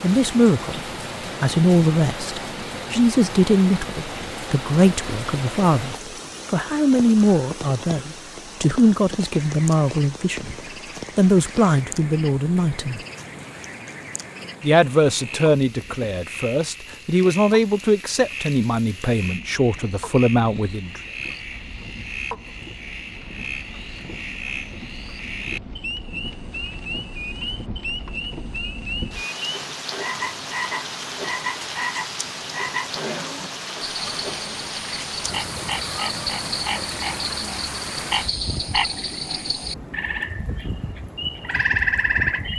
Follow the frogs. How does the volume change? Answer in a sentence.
The volume of the frogs goes up.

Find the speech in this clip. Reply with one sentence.
You can hear the speech from 0.0 to 10.6 s, from 11.2 to 13.0 s and from 14.6 to 21.0 s.